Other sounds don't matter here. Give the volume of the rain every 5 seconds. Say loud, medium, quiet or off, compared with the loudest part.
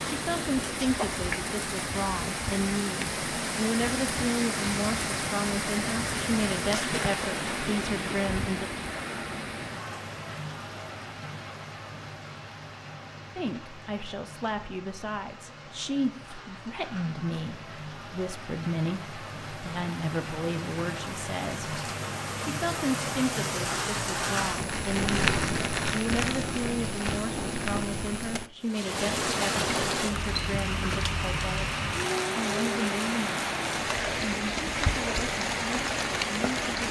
loud, loud, quiet, quiet, loud, loud, loud, loud.